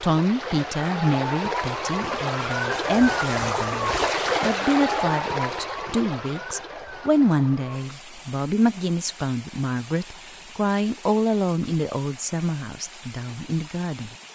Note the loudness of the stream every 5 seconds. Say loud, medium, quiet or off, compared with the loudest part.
loud, medium, quiet.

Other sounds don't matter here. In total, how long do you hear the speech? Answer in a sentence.
You can hear the speech for 14 seconds altogether.